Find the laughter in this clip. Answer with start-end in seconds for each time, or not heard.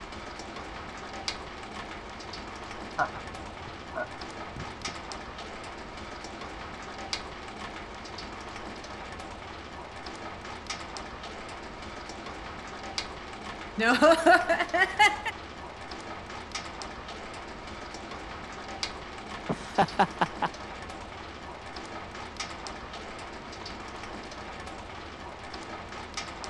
3.0-4.9, 13.8-15.3, 19.4-20.5.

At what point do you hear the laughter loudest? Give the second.
14 s.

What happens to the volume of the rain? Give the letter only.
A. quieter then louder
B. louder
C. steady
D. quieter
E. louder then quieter
C.